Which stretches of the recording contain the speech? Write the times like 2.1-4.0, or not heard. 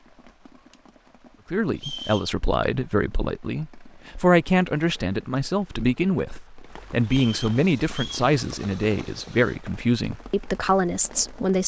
1.5-11.6.